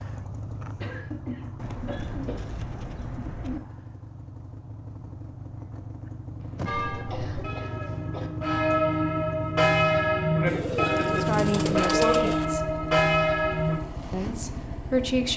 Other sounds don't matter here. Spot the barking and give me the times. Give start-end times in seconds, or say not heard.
not heard.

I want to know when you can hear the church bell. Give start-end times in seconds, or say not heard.
6.7-13.8.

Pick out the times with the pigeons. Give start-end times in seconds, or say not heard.
1.6-3.6, 6.5-8.1, 10.4-12.4.